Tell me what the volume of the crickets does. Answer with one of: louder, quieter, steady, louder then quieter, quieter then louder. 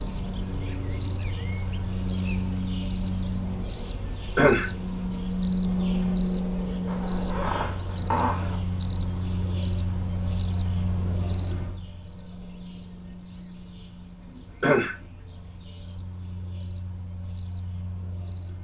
quieter.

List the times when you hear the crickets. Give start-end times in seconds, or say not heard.
0.0-18.5.